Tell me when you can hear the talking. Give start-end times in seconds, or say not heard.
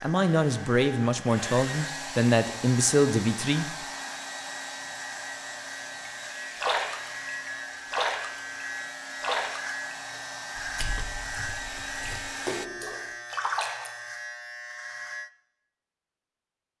0.0-3.9.